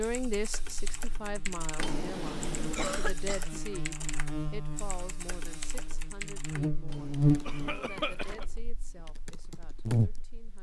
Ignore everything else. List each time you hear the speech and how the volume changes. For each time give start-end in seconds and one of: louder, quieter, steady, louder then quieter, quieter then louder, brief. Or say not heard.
0.0-10.5 quieter.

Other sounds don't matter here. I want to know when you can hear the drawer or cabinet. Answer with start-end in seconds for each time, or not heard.
1.8-3.1, 6.8-8.6.